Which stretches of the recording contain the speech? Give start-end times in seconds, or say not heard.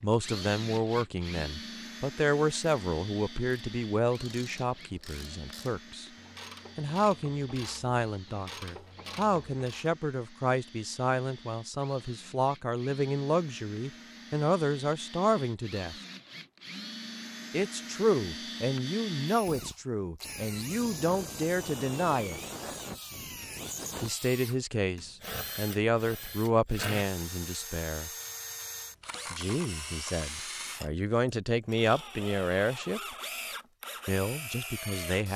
0.0-6.1, 6.8-15.9, 17.5-22.4, 24.0-28.1, 29.3-33.0, 34.0-35.3.